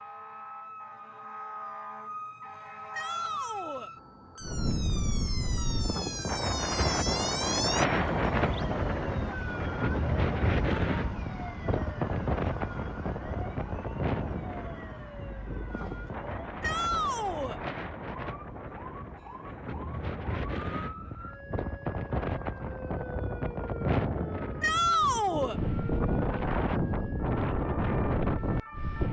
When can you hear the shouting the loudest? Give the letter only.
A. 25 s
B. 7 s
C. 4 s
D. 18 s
A.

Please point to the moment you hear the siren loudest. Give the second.
7 s.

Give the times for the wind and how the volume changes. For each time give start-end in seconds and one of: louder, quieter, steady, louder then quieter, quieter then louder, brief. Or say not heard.
4.4-29.0 quieter then louder.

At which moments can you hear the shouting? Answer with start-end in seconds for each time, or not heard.
2.9-3.9, 16.6-17.6, 24.6-25.6.